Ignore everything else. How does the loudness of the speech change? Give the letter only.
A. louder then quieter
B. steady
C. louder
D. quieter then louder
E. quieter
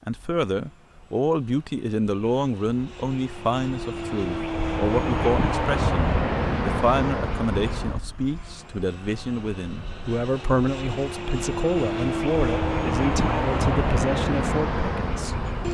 B.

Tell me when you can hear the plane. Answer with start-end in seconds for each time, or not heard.
0.0-15.6.